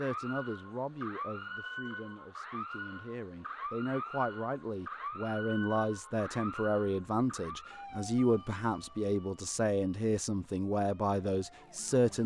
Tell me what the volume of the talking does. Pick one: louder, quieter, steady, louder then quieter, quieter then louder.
louder.